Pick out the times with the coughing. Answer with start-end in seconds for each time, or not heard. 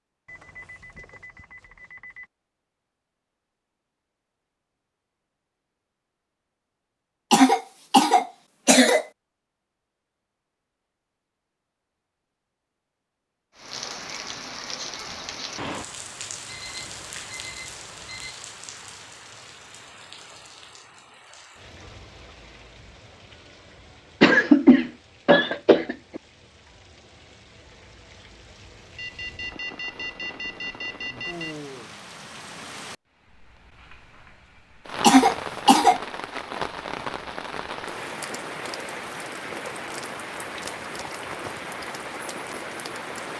7.3-9.1, 24.2-26.2, 35.0-36.0.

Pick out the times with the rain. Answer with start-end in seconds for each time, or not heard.
13.6-43.3.